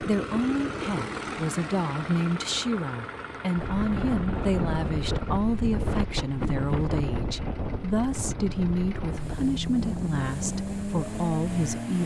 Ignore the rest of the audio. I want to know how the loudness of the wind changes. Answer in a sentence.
The loudness of the wind goes down.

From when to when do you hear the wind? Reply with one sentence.
The wind can be heard from 3.5 to 11.9 s.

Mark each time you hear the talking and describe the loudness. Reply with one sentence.
The talking can be heard from 0.0 to 12.0 s, at a steady volume.